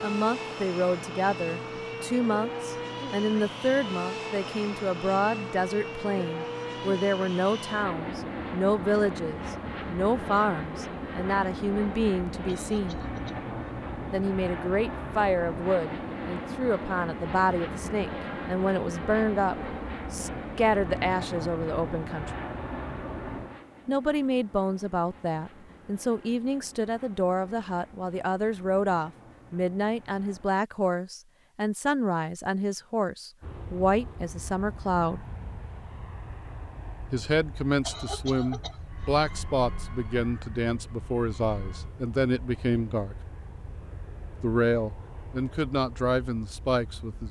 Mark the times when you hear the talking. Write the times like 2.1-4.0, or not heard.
0.0-12.9, 14.1-22.3, 23.9-35.2, 37.1-43.1, 44.4-47.2.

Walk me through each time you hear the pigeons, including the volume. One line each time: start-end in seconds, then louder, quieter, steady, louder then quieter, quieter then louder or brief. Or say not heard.
not heard.